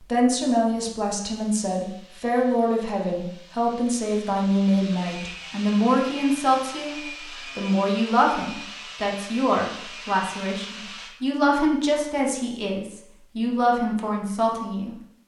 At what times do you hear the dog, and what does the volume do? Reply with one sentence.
The dog can't be heard in this clip.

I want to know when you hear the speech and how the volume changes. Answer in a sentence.
You can hear the speech from 0.0 to 14.9 s, at a steady volume.